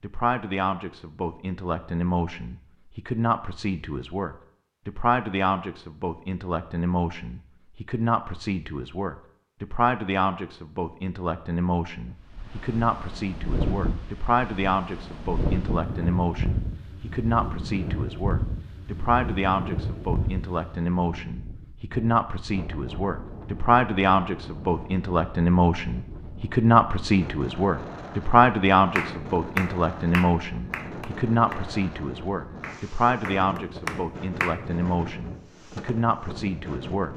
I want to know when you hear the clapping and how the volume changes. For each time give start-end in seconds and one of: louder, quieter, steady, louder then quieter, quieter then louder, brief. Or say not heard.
28.9-34.6 quieter then louder.